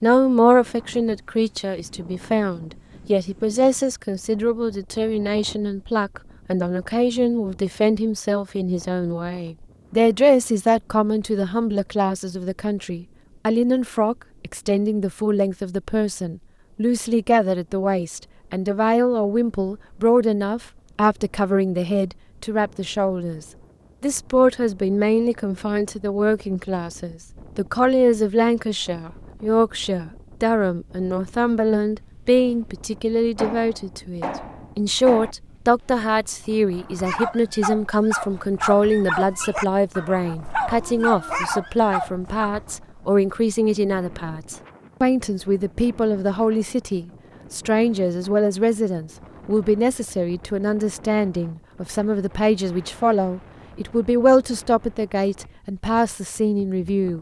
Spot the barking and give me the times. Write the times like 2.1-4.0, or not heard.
37.0-42.5.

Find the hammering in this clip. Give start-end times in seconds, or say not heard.
33.4-35.4.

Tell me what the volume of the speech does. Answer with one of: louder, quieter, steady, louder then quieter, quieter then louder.
steady.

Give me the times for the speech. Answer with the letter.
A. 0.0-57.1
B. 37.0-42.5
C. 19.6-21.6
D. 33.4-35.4
A.